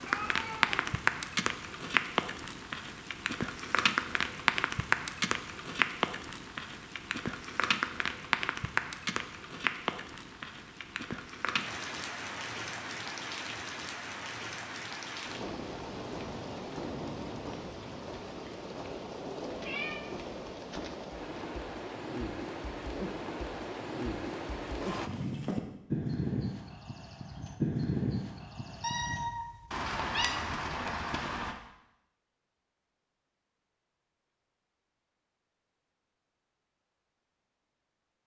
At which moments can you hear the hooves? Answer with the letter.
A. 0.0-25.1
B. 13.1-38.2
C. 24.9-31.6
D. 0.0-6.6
C.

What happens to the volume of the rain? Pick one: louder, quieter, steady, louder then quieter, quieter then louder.
quieter.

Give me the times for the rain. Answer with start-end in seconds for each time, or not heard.
0.0-25.1.